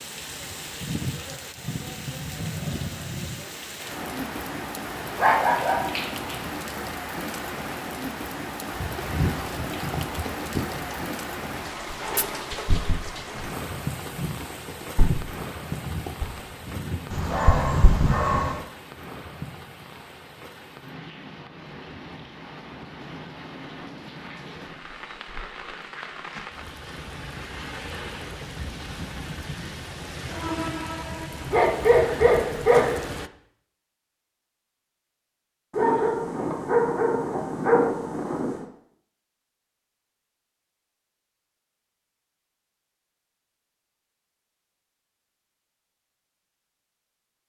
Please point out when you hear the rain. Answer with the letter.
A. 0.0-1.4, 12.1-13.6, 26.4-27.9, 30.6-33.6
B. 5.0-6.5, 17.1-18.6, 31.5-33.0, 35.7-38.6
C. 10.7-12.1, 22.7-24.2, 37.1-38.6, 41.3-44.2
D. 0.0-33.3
D.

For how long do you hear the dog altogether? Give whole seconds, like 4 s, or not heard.
7 s.